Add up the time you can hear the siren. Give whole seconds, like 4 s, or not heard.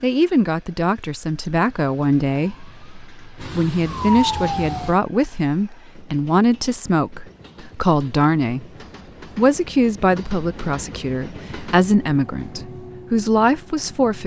3 s.